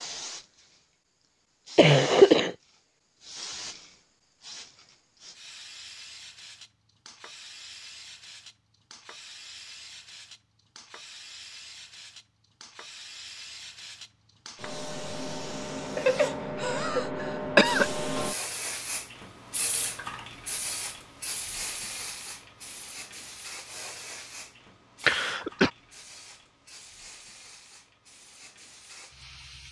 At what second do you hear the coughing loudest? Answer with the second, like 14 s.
2 s.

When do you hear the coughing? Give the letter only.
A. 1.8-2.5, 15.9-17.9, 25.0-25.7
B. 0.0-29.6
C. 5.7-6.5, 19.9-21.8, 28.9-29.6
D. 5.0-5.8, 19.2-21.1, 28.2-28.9
A.